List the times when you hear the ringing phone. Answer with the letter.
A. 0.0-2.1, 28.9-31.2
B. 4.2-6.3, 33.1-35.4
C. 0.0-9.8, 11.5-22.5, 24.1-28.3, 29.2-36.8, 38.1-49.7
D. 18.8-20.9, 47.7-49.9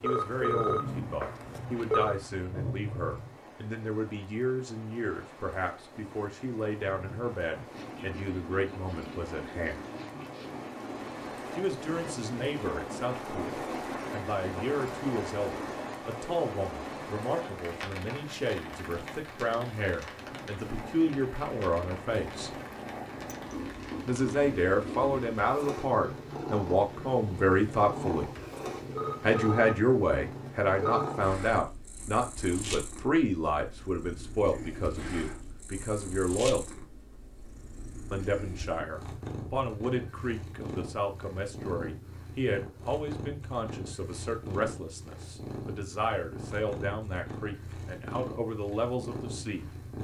A.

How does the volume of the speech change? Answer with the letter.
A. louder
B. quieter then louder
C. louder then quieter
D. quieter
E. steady
C.